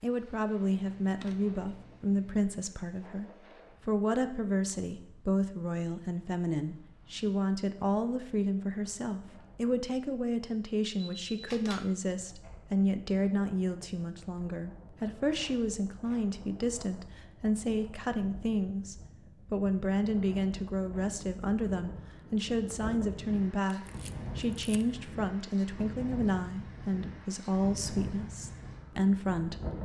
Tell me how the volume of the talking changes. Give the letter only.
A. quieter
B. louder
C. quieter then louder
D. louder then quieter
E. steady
E.